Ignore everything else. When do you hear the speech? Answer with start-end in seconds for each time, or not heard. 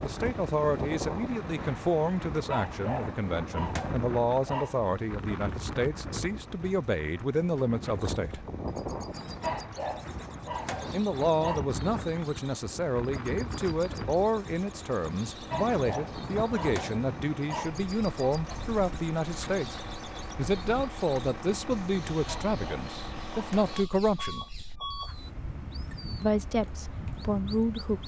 0.0-8.4, 10.9-19.8, 20.4-24.5, 26.2-28.0.